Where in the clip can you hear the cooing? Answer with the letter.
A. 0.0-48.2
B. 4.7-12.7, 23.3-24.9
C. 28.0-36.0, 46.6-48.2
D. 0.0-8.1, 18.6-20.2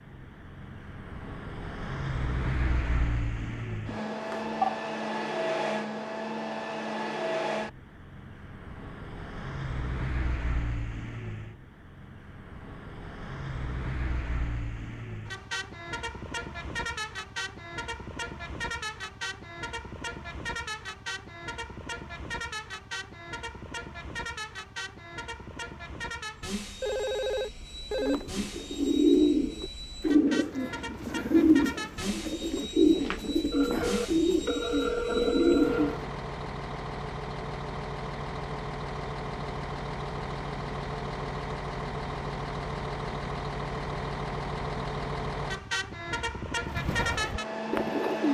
C.